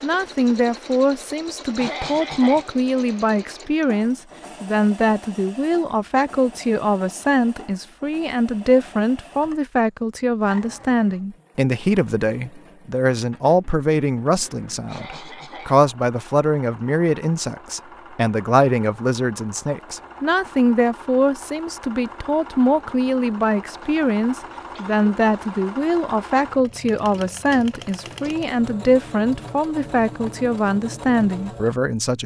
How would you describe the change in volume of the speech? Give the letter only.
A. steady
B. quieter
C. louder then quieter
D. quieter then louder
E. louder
A.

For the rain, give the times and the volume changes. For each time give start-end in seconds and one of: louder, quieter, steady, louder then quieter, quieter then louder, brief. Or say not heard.
not heard.